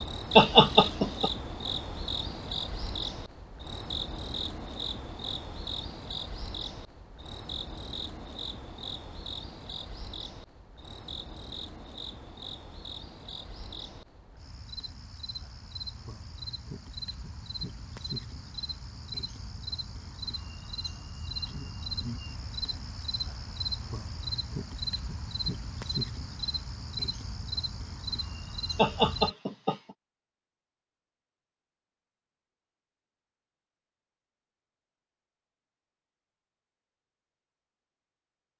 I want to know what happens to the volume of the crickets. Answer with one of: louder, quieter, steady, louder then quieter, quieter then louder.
quieter then louder.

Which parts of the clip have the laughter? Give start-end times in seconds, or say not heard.
0.3-1.3, 28.8-29.8.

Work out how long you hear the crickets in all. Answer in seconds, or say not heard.
29 s.